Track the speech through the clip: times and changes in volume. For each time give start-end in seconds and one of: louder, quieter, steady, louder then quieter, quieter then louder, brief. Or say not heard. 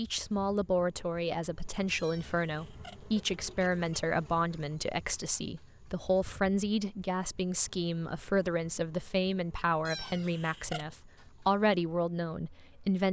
0.0-13.0 steady.